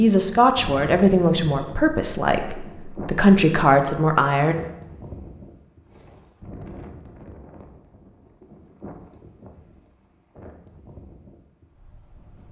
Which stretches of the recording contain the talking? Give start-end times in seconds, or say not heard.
0.0-4.5.